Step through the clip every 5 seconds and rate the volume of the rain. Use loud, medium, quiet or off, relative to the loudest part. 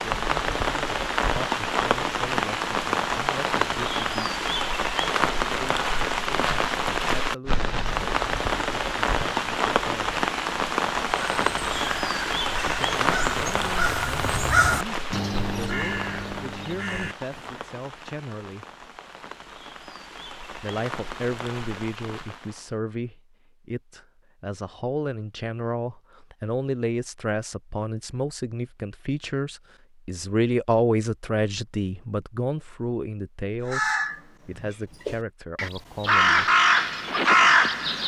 loud, loud, loud, quiet, quiet, off, off, off.